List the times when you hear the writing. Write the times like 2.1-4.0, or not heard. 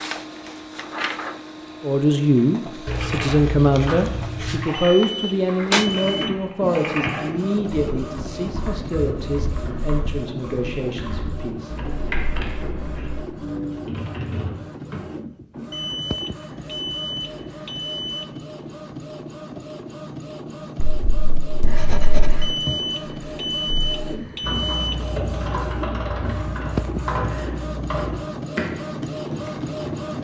2.9-4.6, 20.8-22.5.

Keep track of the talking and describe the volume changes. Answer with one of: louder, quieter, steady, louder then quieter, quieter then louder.
quieter.